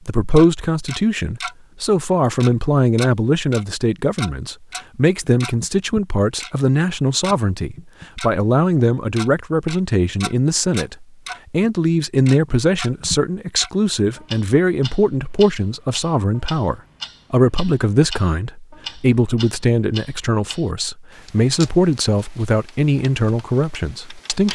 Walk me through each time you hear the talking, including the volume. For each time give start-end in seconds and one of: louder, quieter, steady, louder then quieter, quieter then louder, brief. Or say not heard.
0.1-24.4 steady.